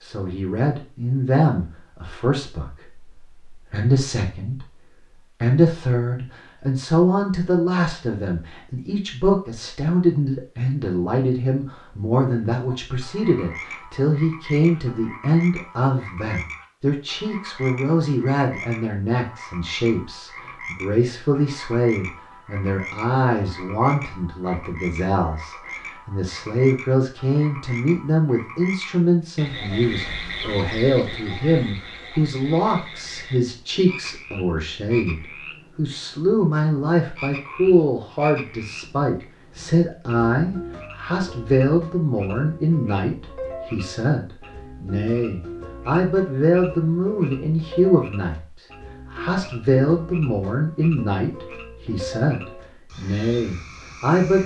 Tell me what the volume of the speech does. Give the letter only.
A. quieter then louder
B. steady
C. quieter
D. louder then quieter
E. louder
B.